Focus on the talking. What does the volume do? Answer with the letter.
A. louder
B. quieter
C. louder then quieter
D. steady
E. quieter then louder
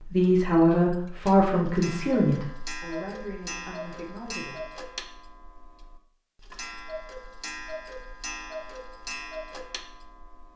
B.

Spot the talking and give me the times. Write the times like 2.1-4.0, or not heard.
0.0-4.7.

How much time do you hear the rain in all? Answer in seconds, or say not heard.
not heard.